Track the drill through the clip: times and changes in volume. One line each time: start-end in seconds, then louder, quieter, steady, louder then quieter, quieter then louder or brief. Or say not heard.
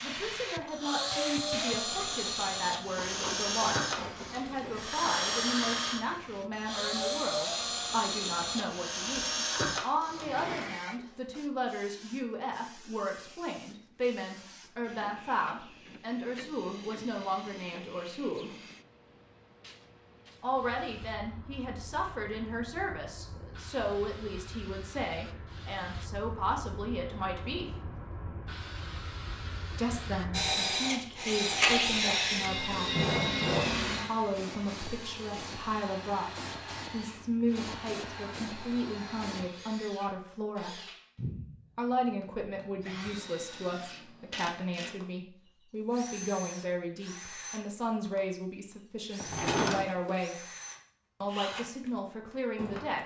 0.0-10.2 steady
30.3-53.0 quieter.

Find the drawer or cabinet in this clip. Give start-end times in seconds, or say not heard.
10.1-11.3, 33.0-33.8, 49.2-50.1.